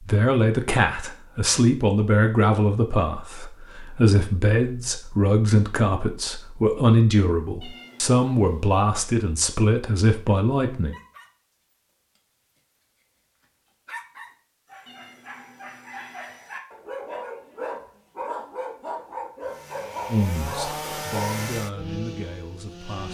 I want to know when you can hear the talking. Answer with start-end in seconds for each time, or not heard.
0.0-10.9, 20.1-23.0.